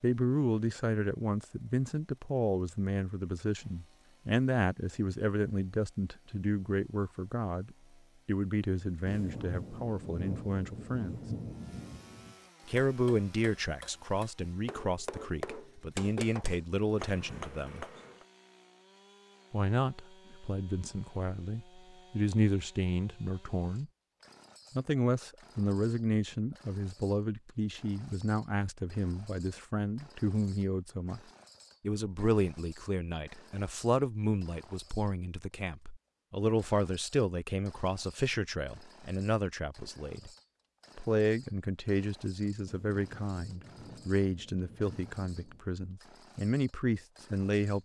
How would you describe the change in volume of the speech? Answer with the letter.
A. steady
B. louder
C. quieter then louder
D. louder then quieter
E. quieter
A.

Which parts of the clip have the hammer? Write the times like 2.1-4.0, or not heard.
12.8-18.2.